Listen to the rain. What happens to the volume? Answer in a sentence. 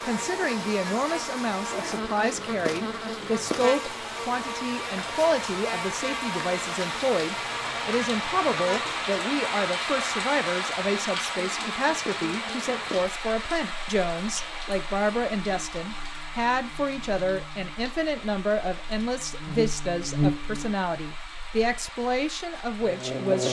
The loudness of the rain goes up, then down.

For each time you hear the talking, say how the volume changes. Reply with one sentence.
You can hear the talking from 0.0 to 23.4 s, at a steady volume.